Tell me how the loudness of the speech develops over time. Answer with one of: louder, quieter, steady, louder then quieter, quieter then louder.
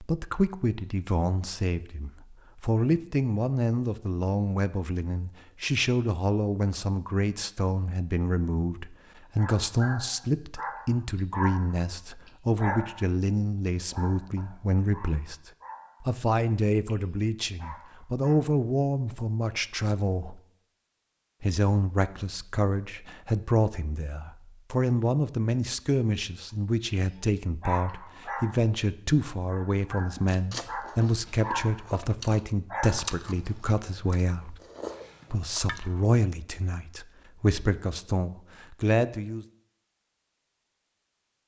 steady.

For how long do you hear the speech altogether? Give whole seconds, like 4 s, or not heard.
38 s.